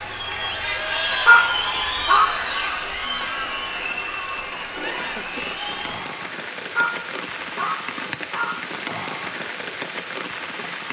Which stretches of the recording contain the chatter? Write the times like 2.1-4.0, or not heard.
0.0-6.1.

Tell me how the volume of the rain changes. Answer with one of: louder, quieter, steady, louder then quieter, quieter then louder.
louder.